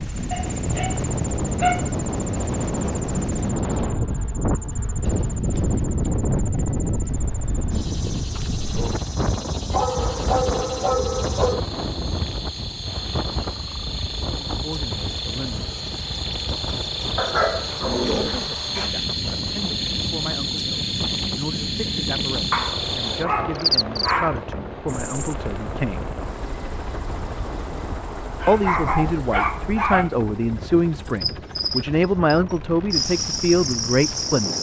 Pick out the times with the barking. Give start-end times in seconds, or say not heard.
0.3-2.0, 9.7-11.6, 17.1-18.9, 22.5-24.4, 28.4-30.1.